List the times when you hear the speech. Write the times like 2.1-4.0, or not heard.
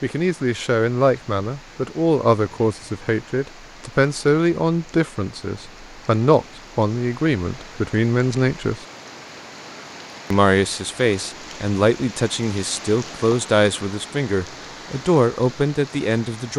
0.0-8.8, 10.3-16.5.